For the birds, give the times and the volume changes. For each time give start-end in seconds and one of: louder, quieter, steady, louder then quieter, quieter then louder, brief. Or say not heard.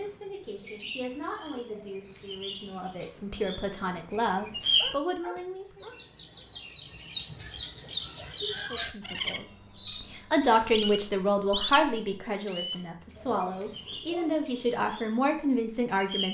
0.0-16.2 louder then quieter.